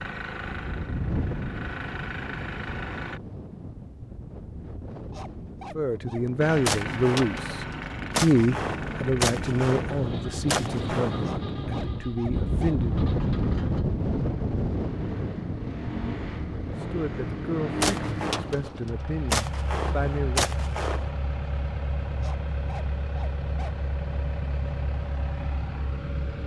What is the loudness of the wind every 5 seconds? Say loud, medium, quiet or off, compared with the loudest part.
medium, medium, loud, medium, off, off.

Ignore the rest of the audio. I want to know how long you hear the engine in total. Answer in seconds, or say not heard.
23 s.